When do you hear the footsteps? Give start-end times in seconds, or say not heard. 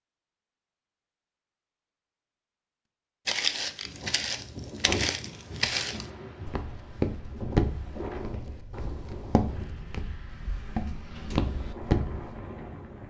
3.2-12.3.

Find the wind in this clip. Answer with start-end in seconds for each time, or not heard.
3.8-13.0.